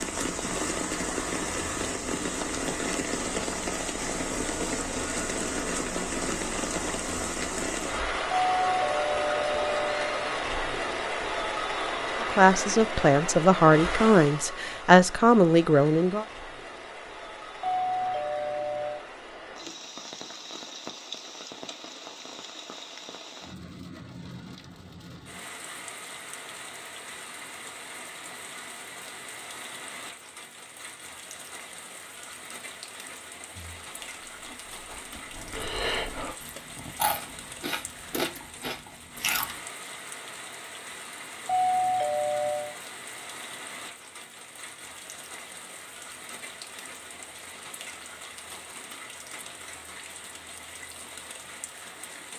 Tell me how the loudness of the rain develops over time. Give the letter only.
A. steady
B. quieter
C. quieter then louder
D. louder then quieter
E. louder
B.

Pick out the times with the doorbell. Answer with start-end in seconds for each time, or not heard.
8.3-10.3, 17.6-19.0, 41.5-42.8.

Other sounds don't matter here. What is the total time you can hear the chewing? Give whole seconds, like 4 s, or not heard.
6 s.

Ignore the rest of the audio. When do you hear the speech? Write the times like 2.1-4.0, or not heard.
12.2-16.2.